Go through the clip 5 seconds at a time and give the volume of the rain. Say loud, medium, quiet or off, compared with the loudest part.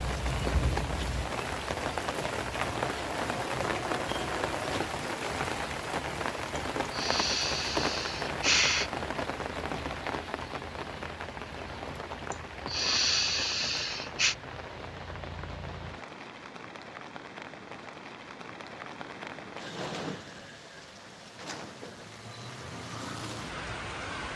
loud, loud, medium, medium, medium.